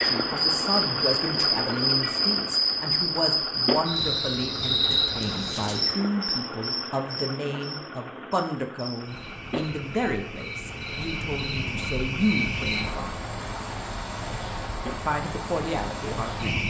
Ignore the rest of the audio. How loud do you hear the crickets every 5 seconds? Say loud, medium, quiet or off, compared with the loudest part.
loud, medium, medium, medium.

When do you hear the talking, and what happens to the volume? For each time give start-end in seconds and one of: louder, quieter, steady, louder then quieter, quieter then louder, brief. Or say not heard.
0.0-13.2 steady
14.9-16.6 brief.